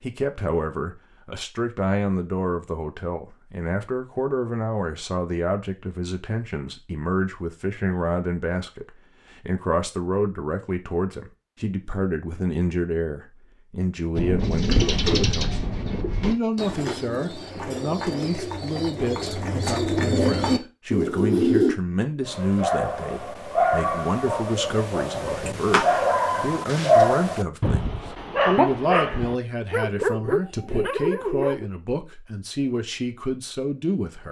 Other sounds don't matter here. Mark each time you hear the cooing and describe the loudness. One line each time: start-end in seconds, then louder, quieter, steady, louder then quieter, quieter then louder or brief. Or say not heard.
14.2-21.8 quieter then louder.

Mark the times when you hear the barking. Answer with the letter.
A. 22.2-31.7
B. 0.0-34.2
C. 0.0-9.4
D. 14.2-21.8
A.